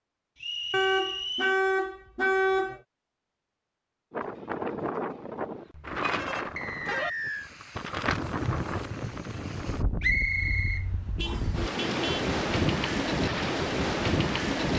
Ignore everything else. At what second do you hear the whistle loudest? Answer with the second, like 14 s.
10 s.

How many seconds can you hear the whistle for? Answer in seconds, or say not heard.
4 s.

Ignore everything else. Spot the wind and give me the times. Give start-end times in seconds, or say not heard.
4.1-14.7.